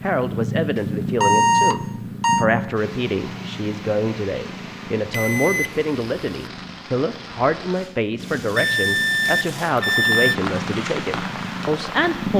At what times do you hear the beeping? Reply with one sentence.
You can hear the beeping from 0.8 to 2.5 s, from 5.1 to 6.5 s and from 8.6 to 10.3 s.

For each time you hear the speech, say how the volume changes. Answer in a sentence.
The speech can be heard from 0.0 to 12.3 s, at a steady volume.